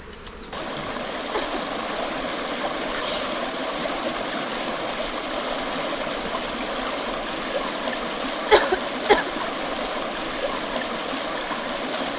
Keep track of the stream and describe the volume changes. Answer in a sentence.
The volume of the stream stays about the same.